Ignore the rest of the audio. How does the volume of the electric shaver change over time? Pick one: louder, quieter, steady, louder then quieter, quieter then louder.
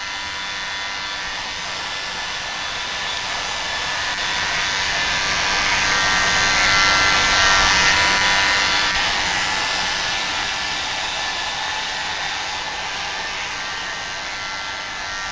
louder then quieter.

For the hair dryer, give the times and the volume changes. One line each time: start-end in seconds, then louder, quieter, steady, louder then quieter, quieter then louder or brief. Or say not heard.
0.0-15.2 louder then quieter.